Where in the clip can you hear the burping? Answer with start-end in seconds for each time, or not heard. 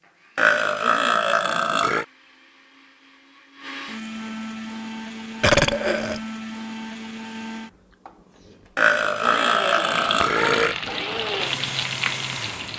0.3-2.0, 5.4-6.2, 8.8-10.8.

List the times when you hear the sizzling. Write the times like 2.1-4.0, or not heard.
9.9-12.7.